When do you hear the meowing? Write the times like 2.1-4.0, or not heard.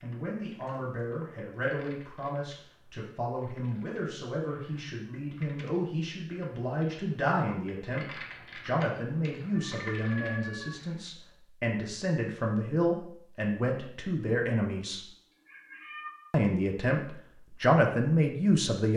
0.5-0.9, 9.6-10.8, 15.3-16.1.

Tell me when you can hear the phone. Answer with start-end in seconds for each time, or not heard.
not heard.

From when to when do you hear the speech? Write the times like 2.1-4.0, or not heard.
0.0-15.0, 16.3-18.9.